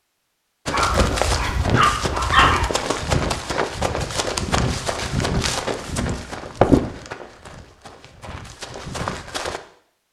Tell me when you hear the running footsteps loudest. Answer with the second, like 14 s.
7 s.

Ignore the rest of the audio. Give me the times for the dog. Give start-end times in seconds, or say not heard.
0.7-2.7.